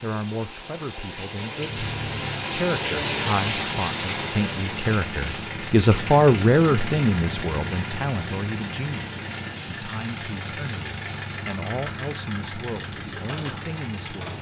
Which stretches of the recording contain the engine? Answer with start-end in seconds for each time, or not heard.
1.6-14.3.